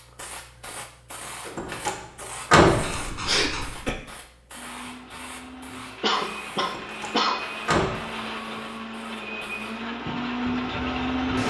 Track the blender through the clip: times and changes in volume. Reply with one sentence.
The blender can be heard from 4.5 to 11.4 s, getting louder.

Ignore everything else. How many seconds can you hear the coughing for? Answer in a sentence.
You can hear the coughing for 3 seconds altogether.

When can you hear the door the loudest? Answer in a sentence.
The loudest moment of the door is at 3 seconds.